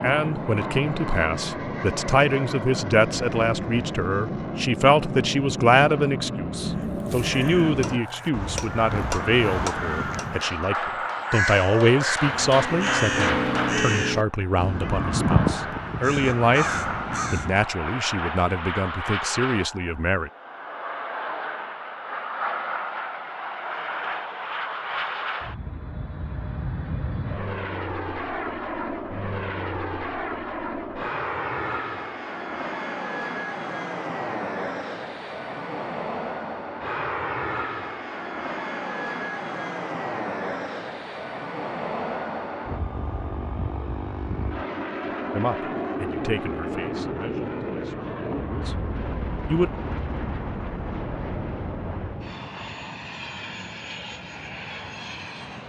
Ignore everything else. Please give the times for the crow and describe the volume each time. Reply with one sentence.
The crow can be heard from 6.7 to 17.6 s, getting louder.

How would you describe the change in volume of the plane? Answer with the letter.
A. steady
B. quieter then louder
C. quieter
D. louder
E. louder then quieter
A.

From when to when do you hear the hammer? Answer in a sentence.
The hammer can be heard from 7.6 to 13.8 s.